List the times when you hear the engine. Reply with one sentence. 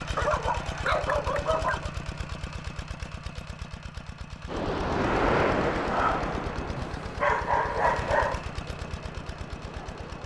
You can hear the engine from 0.0 to 10.2 s.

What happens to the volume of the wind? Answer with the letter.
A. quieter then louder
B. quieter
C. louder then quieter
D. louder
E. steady
B.